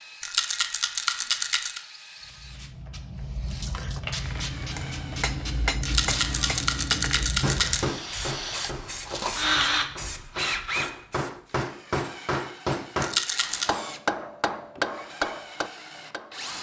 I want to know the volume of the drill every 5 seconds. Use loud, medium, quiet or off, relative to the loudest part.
quiet, loud, medium, medium.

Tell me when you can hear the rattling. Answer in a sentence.
The rattling can be heard from 0.2 to 1.8 s, from 5.8 to 7.8 s and from 13.0 to 13.7 s.